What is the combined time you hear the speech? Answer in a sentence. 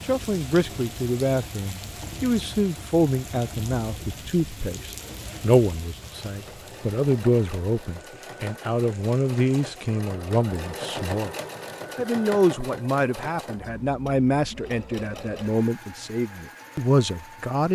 The speech can be heard for 17 seconds in total.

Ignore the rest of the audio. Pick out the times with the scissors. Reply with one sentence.
The scissors can't be heard in this clip.